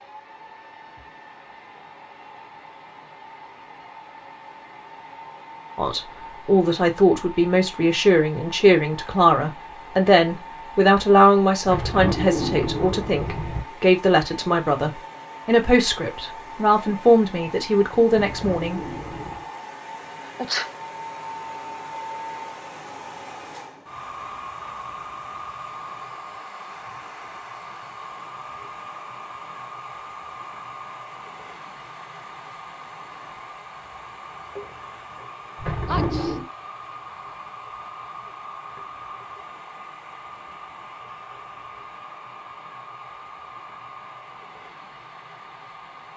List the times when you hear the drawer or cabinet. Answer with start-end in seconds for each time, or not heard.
11.7-13.7, 18.1-19.5, 35.5-36.5.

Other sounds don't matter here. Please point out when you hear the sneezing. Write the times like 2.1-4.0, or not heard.
20.2-20.7, 35.9-36.4.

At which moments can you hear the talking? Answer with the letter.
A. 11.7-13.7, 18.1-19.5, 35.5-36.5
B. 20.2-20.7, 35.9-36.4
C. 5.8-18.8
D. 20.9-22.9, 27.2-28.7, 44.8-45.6
C.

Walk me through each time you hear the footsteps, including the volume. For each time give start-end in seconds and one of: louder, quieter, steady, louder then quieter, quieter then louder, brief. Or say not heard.
not heard.